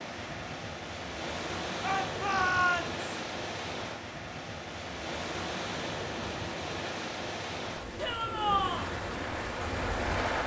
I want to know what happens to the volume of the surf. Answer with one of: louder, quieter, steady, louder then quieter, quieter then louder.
steady.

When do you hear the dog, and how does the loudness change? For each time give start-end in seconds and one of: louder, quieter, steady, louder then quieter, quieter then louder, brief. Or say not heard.
not heard.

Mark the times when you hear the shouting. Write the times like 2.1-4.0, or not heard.
1.8-3.0, 8.0-8.9.